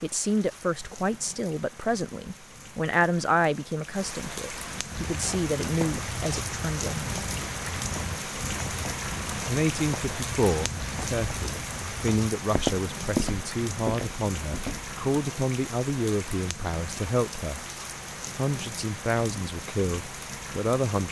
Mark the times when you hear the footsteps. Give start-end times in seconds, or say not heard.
4.9-14.9.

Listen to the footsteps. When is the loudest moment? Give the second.
13 s.